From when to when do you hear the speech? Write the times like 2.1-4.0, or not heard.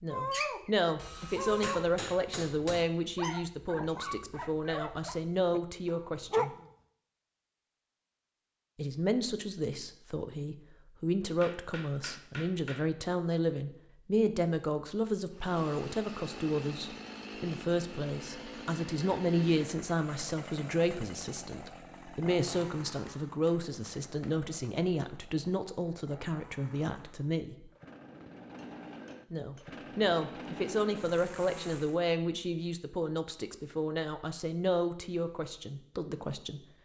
0.0-6.5, 8.8-27.7, 29.3-36.6.